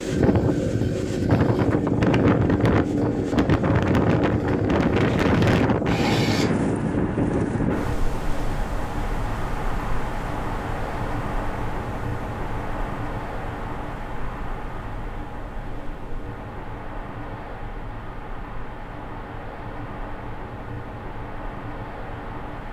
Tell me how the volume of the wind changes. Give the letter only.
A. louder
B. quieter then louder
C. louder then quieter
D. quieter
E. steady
D.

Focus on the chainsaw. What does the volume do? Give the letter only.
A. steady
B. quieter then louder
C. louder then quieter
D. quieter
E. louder
A.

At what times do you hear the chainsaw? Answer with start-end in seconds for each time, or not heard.
0.0-6.5.